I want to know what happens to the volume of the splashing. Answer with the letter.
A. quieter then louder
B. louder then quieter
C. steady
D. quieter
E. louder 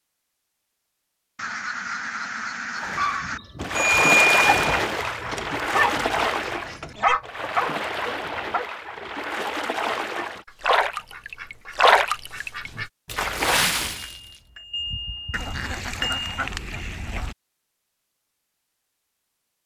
A.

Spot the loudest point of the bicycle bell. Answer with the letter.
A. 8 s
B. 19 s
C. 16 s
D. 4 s
D.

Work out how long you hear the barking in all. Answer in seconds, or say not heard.
8 s.